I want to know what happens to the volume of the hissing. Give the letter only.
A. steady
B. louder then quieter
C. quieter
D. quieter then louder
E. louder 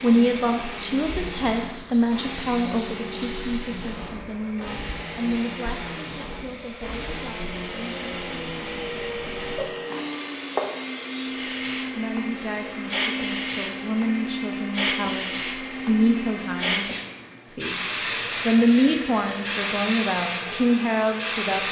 E.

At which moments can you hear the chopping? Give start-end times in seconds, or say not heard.
not heard.